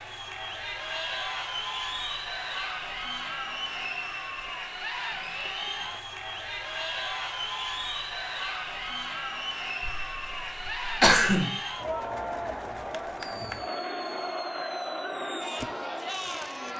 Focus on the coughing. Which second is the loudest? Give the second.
11 s.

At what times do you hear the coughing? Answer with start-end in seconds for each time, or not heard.
9.8-11.5.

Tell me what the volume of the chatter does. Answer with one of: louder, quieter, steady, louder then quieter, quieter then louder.
steady.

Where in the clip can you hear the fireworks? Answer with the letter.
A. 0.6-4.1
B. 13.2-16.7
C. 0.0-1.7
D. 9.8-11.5
B.